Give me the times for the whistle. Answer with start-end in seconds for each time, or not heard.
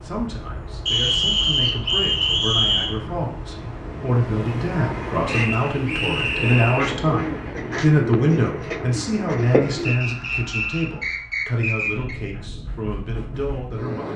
0.8-3.0, 5.2-6.9, 9.8-12.2.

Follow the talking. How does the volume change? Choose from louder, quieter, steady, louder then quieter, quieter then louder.
louder then quieter.